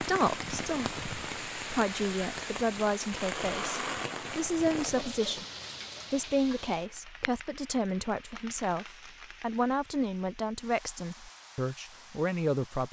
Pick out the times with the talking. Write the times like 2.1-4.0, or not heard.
0.0-5.5, 6.1-12.8.